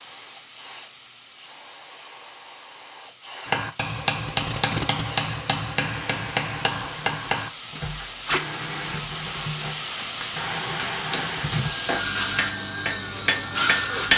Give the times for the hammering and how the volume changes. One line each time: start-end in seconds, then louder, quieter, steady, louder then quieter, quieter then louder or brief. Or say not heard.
3.5-7.8 steady
10.0-14.1 louder.